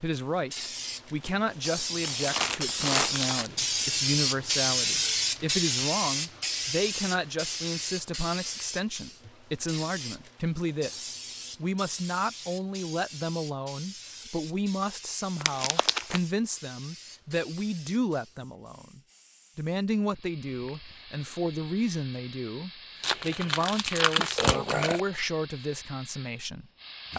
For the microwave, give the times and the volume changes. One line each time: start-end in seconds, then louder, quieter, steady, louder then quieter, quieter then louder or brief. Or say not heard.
not heard.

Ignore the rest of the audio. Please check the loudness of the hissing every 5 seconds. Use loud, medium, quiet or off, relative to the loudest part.
loud, loud, quiet, quiet, quiet, quiet.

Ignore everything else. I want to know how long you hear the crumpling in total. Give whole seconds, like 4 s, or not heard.
4 s.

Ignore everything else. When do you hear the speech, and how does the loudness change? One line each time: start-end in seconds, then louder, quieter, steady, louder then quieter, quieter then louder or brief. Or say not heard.
0.0-27.1 steady.